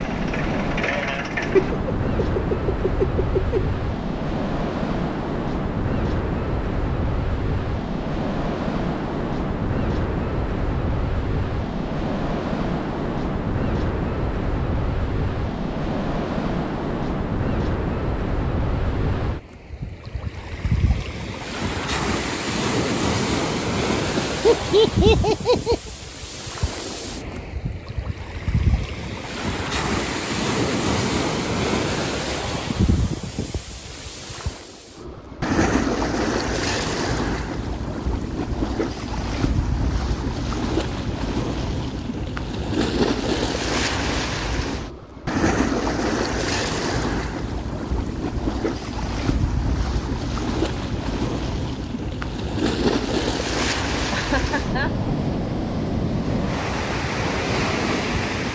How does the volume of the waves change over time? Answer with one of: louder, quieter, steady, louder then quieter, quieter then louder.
steady.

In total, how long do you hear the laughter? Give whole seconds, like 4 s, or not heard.
5 s.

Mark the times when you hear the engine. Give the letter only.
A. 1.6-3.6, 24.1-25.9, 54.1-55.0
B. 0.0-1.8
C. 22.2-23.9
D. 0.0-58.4
B.